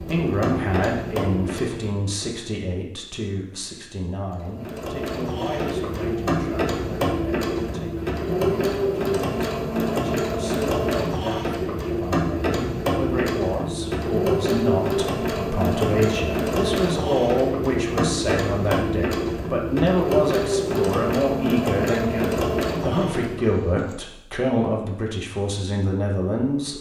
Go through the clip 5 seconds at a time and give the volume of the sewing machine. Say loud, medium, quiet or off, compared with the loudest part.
medium, loud, loud, loud, loud, off.